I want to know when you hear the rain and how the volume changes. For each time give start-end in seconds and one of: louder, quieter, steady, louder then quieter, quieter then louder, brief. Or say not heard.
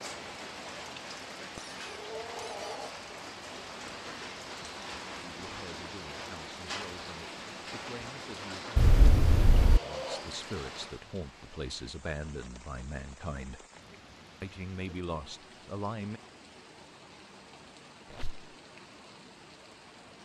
0.0-20.2 quieter.